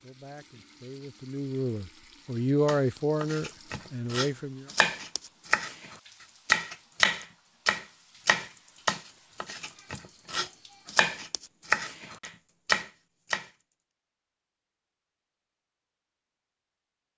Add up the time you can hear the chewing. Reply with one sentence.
You can't hear the chewing here.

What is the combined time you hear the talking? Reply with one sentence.
You can hear the talking for 5 seconds altogether.